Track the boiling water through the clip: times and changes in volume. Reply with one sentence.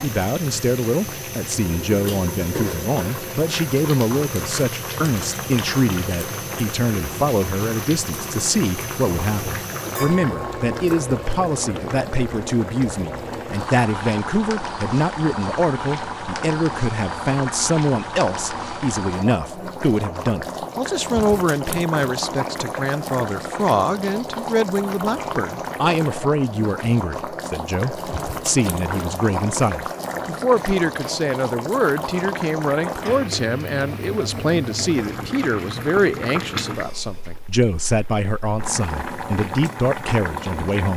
The boiling water can be heard from 0.0 to 40.9 s, at a steady volume.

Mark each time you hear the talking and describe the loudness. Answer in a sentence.
The talking can be heard from 0.0 to 40.9 s, at a steady volume.